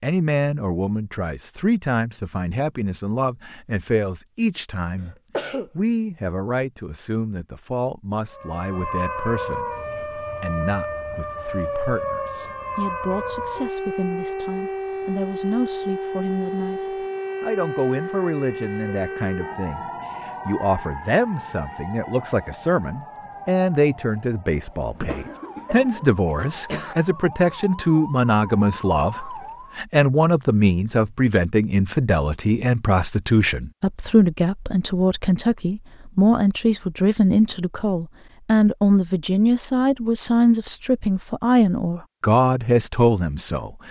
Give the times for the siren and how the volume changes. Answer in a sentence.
The siren can be heard from 8.3 to 29.9 s, getting quieter.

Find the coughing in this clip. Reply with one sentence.
You can hear the coughing from 5.0 to 5.7 s and from 24.9 to 26.9 s.